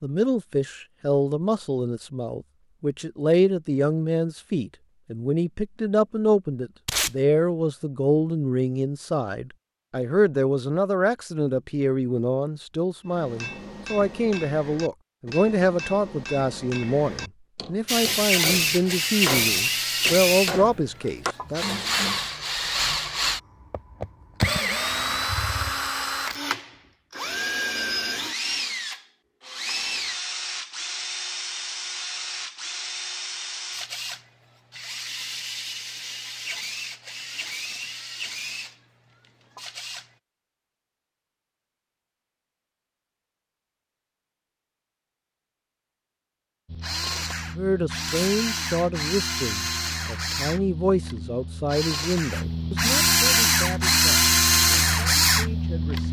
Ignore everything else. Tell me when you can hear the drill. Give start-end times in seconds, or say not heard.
17.9-40.1, 46.6-56.0.